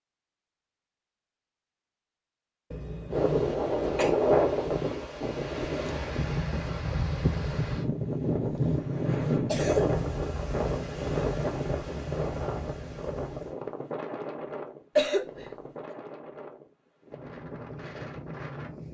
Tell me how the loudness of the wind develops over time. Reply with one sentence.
The volume of the wind goes down.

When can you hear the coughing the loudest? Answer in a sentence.
The loudest moment of the coughing is at 15 seconds.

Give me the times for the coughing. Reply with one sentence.
You can hear the coughing from 2.7 to 4.2 s, from 8.4 to 10.0 s and from 14.9 to 15.9 s.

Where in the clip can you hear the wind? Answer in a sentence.
You can hear the wind from 3.1 to 18.8 s.